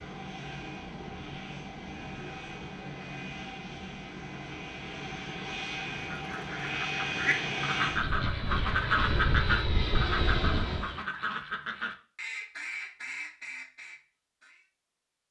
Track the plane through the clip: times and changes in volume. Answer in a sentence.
You can hear the plane from 0.0 to 11.0 s, getting louder.